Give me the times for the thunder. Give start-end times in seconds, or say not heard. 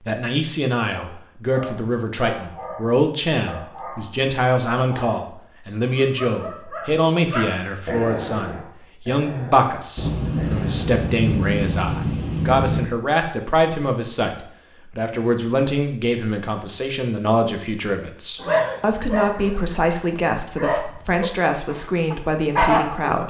9.9-12.9.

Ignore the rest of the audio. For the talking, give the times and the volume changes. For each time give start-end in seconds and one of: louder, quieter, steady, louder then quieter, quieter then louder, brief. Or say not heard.
0.0-23.2 steady.